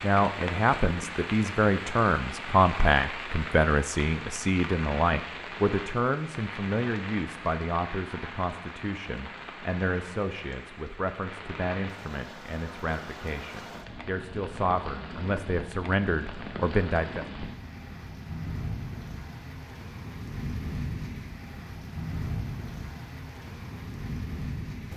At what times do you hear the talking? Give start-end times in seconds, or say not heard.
0.0-17.2.